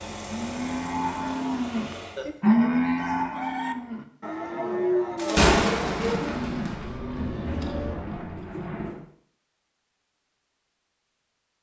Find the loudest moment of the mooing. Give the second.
3 s.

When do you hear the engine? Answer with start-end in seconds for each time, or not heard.
0.0-2.2.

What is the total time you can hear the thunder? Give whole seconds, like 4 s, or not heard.
4 s.